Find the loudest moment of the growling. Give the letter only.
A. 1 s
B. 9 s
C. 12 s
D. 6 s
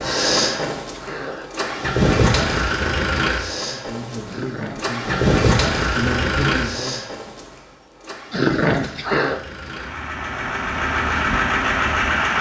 B.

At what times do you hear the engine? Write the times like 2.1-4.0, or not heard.
0.0-12.3.